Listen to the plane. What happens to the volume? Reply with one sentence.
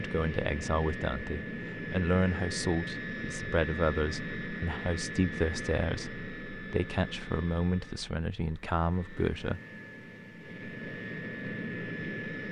The loudness of the plane goes down, then up.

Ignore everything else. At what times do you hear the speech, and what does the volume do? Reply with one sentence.
The speech can be heard from 0.0 to 9.6 s, at a steady volume.